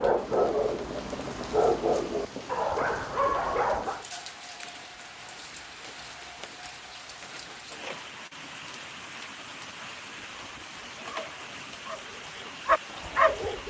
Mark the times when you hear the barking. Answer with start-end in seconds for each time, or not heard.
0.0-4.0, 10.3-13.6.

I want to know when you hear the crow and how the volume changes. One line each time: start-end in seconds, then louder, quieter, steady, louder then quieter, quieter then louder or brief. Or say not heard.
not heard.